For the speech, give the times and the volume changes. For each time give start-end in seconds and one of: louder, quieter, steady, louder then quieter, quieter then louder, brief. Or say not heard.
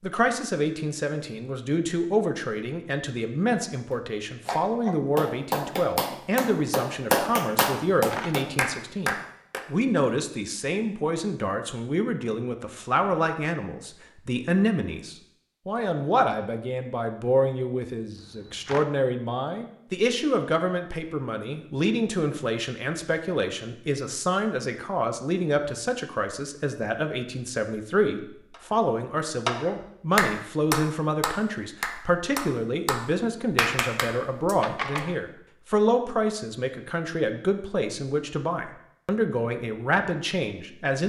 0.0-41.0 steady.